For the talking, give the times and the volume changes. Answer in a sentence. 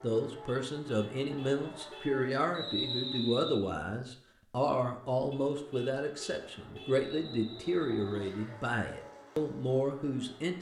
You can hear the talking from 0.0 to 10.5 s, at a steady volume.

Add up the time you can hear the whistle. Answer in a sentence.
You can hear the whistle for 2 seconds altogether.